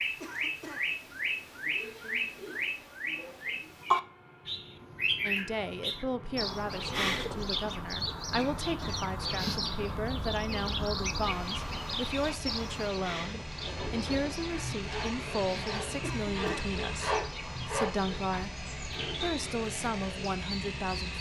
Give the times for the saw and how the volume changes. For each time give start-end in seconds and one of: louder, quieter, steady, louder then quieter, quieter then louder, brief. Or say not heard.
13.6-19.3 louder then quieter.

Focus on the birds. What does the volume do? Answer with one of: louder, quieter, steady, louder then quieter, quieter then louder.
quieter.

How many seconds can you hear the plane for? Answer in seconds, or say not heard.
21 s.